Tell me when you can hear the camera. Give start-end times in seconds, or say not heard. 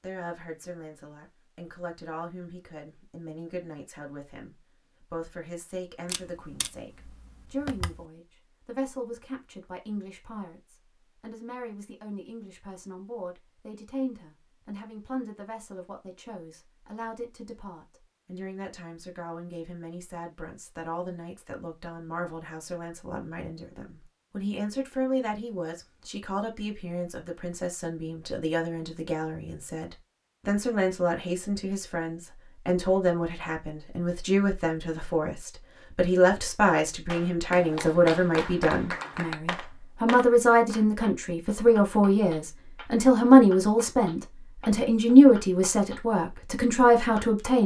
6.0-8.1.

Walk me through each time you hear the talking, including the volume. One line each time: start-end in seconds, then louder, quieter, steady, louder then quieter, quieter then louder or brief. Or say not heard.
0.0-47.6 louder.